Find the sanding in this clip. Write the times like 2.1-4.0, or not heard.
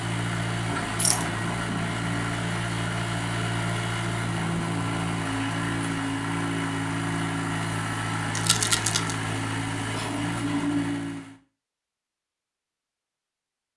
not heard.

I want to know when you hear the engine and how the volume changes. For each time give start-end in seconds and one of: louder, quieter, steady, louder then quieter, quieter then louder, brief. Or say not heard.
0.0-11.3 steady.